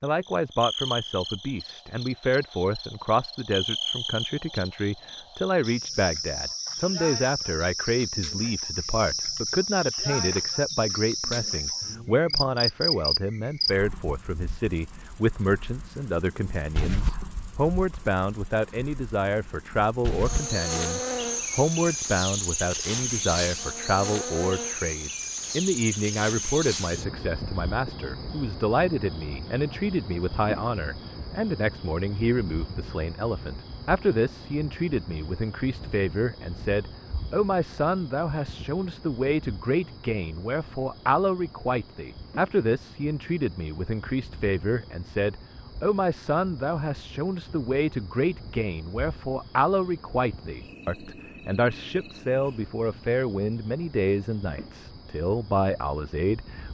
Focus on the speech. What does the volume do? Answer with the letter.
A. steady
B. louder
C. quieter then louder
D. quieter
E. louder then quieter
A.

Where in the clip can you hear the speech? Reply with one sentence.
The speech can be heard from 0.0 to 56.6 s.